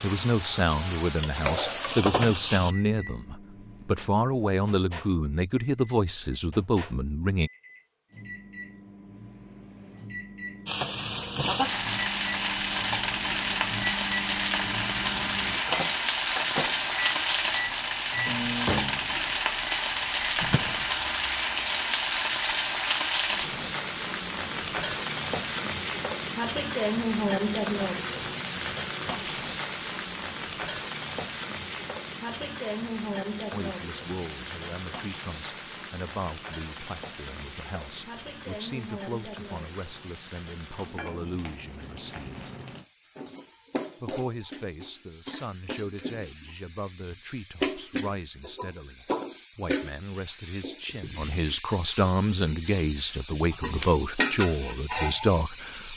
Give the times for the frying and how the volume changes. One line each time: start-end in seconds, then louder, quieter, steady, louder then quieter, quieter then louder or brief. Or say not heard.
0.0-2.8 brief
10.7-55.9 quieter then louder.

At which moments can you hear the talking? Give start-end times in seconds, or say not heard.
0.0-7.5, 33.5-42.5, 44.0-55.9.